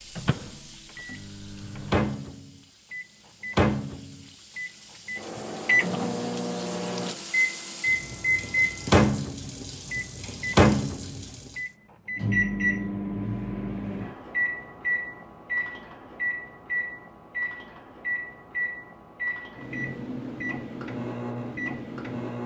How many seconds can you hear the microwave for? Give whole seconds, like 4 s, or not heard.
22 s.